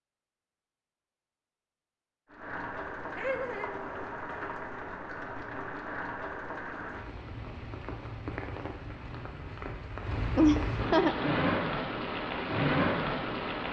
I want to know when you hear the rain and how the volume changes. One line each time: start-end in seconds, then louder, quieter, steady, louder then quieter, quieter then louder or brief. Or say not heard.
2.3-13.6 louder.